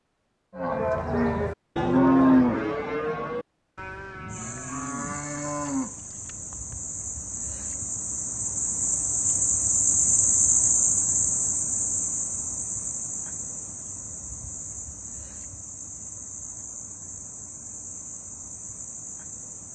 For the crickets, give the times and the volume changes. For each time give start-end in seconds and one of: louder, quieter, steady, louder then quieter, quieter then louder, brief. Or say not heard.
4.2-19.7 louder then quieter.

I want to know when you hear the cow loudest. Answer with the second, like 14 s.
2 s.